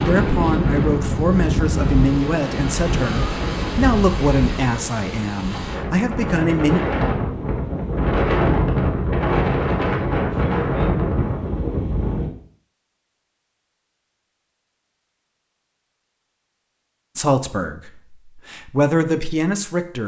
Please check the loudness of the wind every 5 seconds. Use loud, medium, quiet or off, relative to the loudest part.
loud, loud, loud, off.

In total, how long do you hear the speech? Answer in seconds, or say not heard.
10 s.